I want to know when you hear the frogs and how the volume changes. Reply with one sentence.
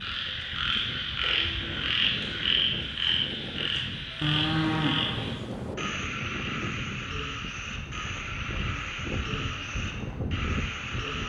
The frogs can be heard from 0.0 to 11.2 s, getting quieter.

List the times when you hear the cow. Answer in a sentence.
You can hear the cow from 4.2 to 5.8 s.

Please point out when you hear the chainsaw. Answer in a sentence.
The chainsaw can't be heard in this clip.